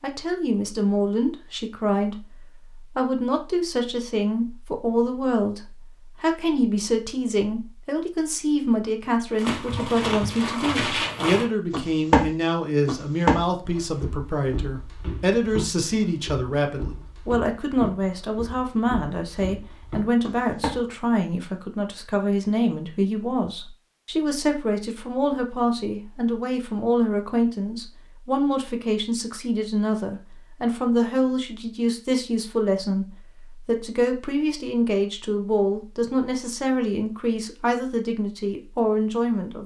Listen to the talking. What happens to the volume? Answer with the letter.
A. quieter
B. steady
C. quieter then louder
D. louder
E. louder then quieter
B.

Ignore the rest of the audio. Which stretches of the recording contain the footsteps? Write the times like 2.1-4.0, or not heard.
9.3-20.9.